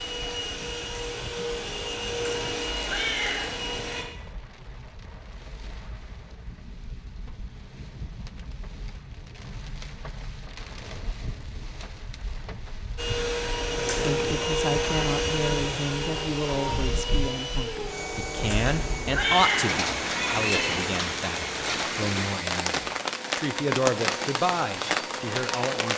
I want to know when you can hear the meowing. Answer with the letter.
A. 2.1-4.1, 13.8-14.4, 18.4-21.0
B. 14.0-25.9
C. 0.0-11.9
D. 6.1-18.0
A.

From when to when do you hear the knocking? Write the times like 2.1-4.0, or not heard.
not heard.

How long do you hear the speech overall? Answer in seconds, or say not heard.
12 s.